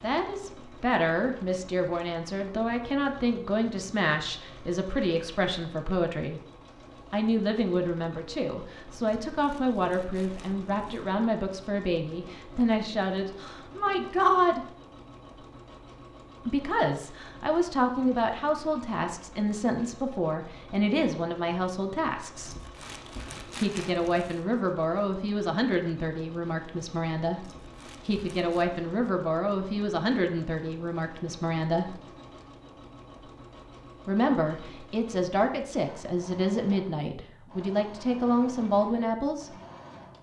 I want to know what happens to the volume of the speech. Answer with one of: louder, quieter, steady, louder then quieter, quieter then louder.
steady.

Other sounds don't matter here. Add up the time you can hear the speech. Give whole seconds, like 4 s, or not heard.
34 s.